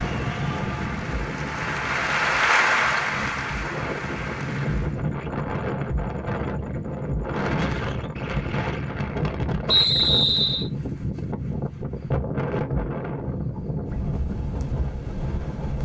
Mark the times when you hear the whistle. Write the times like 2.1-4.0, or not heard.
9.7-10.7.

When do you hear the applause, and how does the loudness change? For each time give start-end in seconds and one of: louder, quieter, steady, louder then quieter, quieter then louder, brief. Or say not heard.
0.0-5.0 louder then quieter.